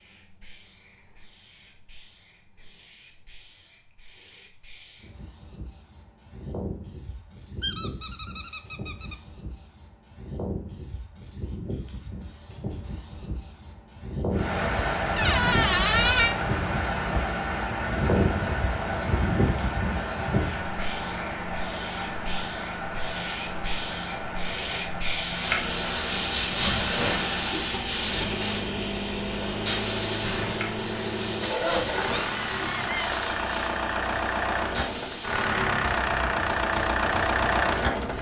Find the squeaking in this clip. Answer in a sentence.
You can hear the squeaking from 7.6 to 9.2 s, from 15.2 to 16.4 s and from 32.1 to 33.3 s.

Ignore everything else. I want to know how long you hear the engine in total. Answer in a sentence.
The engine can be heard for 24 seconds in total.